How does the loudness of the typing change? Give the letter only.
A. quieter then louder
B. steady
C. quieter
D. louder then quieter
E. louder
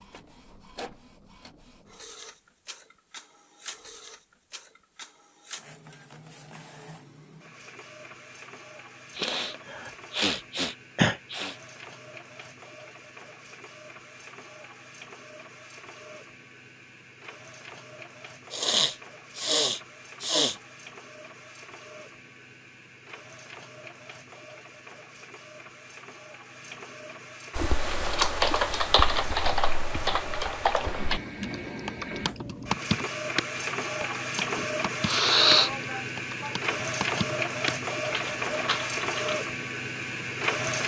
C.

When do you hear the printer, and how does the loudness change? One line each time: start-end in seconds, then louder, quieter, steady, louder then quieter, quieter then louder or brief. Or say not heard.
0.0-40.8 louder.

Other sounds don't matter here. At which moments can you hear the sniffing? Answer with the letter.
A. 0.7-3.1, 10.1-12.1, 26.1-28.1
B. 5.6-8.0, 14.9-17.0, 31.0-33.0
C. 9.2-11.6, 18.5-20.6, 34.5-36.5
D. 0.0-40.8
C.